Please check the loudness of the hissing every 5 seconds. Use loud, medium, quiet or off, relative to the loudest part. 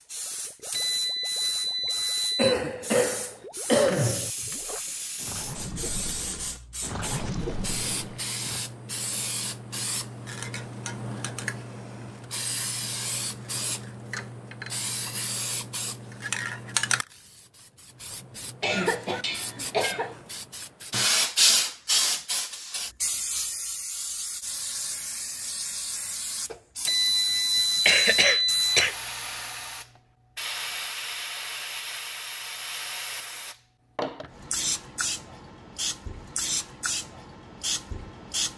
medium, medium, medium, medium, loud, medium, medium, medium.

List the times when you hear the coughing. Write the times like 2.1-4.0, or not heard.
2.4-4.3, 18.6-20.1, 27.9-28.9.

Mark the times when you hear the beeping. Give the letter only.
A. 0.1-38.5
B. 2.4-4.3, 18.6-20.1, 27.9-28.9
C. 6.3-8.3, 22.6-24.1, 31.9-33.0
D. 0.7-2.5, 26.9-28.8
D.